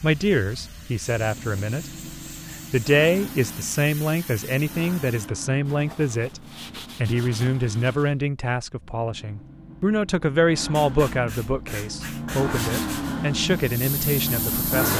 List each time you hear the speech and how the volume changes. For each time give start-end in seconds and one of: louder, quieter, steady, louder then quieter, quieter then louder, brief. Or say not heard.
0.0-1.9 brief
2.7-14.9 steady.